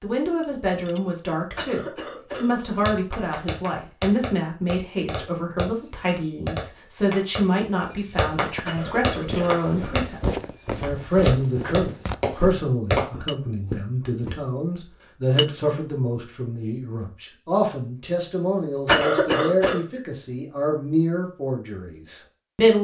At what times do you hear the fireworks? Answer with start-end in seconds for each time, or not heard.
2.6-13.1.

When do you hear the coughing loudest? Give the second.
19 s.